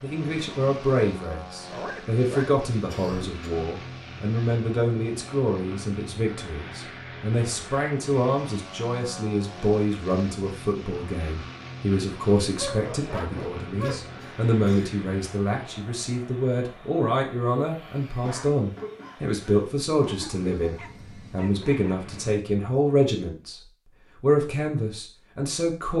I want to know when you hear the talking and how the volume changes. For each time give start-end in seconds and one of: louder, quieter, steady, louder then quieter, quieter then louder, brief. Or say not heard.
0.0-23.6 steady
24.2-25.9 brief.